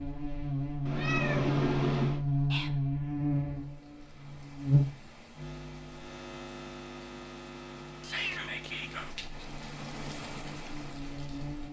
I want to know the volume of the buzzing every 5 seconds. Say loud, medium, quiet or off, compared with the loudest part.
loud, quiet, quiet.